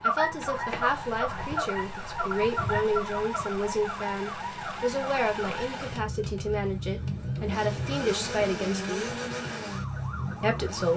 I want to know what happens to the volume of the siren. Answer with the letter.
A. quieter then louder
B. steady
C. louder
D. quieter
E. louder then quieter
D.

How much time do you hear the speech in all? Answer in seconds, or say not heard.
10 s.